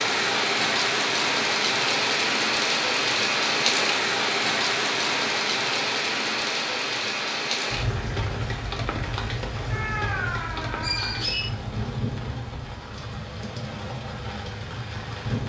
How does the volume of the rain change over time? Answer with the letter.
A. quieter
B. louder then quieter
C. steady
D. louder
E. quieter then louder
A.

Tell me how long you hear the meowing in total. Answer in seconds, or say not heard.
2 s.